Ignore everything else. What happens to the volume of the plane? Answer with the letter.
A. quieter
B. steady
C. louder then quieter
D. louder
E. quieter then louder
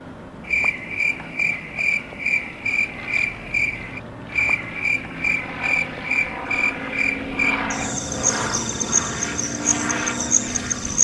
D.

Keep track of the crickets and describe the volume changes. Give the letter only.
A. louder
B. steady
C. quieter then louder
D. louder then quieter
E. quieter
B.